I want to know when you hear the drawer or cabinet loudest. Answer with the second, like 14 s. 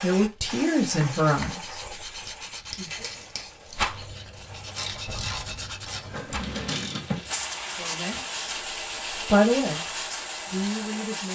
7 s.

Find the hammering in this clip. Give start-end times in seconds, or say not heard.
not heard.